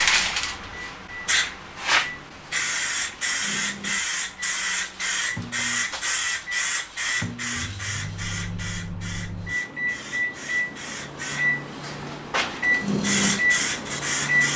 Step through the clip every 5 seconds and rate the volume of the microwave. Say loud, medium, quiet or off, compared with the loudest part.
quiet, medium, loud.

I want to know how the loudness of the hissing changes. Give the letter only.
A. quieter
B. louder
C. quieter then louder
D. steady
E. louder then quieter
C.